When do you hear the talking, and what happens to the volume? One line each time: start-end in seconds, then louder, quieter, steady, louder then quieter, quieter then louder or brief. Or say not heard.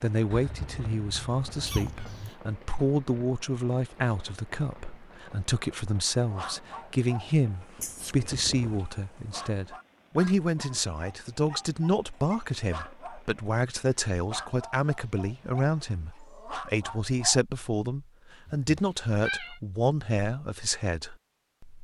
0.0-21.7 steady.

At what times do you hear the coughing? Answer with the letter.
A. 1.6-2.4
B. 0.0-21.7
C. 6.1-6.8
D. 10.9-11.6
A.